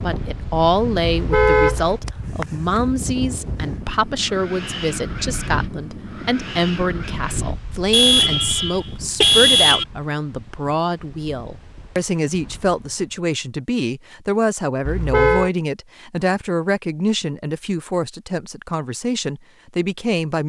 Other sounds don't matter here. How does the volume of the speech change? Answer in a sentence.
The loudness of the speech stays about the same.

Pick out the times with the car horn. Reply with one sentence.
The car horn can be heard from 1.0 to 1.9 s, from 7.9 to 9.8 s and from 14.8 to 15.5 s.